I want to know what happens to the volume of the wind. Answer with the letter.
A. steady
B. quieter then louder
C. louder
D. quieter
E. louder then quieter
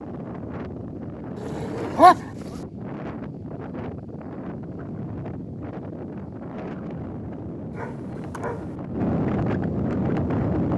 C.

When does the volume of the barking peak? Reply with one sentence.
The loudest moment of the barking is at 2 seconds.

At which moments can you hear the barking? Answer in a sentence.
The barking can be heard from 1.4 to 2.6 s and from 7.8 to 8.8 s.